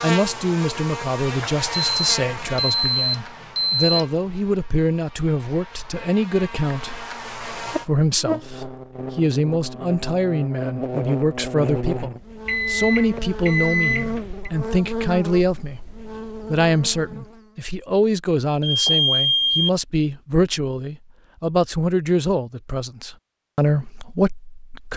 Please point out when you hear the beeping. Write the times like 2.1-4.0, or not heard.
1.9-3.9, 12.4-14.5, 18.6-19.7.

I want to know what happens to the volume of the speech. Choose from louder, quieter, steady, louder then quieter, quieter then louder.
steady.